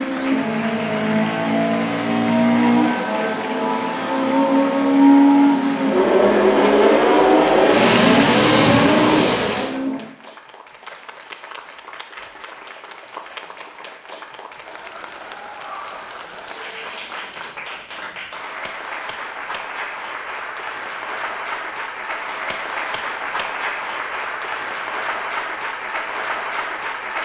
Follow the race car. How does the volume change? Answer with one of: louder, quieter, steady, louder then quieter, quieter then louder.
louder.